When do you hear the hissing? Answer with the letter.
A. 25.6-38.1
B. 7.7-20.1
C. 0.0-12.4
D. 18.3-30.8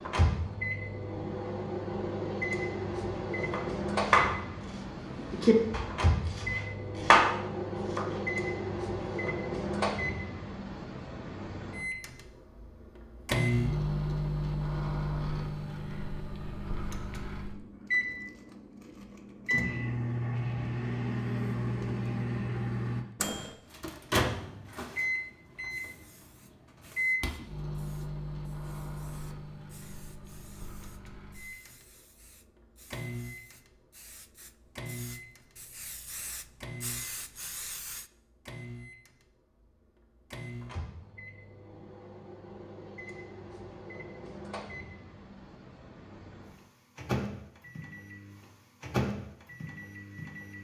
A.